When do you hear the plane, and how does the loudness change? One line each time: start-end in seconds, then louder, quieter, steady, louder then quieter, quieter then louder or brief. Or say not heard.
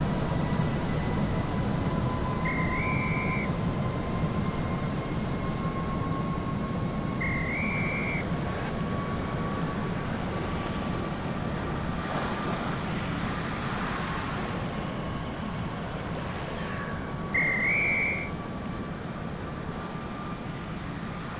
0.0-21.3 quieter.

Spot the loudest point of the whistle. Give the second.
18 s.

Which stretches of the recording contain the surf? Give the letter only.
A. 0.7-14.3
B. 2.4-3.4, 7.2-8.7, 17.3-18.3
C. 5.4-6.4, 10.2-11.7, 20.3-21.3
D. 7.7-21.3
D.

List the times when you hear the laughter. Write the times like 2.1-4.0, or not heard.
not heard.